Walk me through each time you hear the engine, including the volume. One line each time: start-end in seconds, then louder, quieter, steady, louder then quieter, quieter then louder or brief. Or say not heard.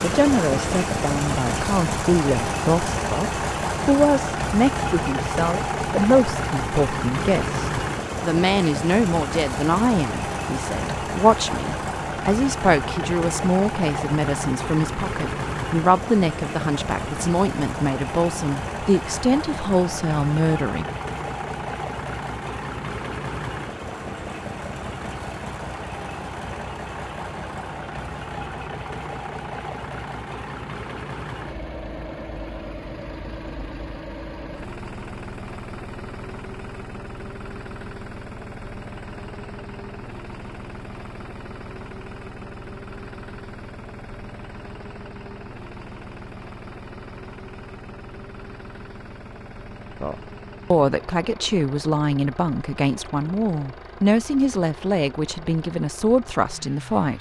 0.0-57.1 quieter.